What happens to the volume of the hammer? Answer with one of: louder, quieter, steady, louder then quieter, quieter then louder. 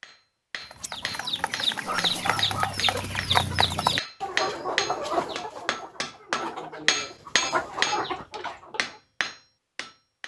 louder then quieter.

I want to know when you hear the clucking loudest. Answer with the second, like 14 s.
3 s.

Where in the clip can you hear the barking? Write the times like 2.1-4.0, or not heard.
1.9-2.8, 7.7-8.7.